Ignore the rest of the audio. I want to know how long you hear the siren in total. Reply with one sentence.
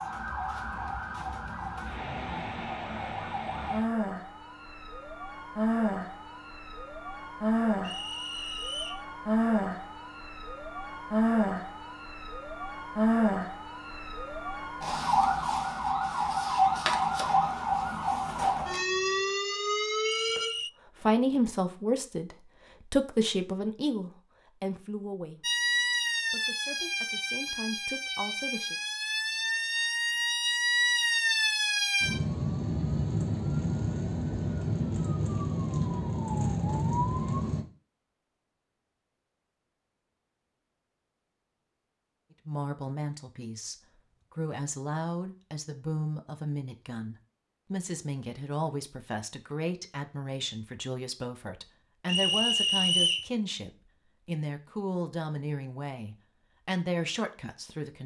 The siren can be heard for 33 seconds in total.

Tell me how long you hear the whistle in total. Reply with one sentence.
You can hear the whistle for 3 seconds altogether.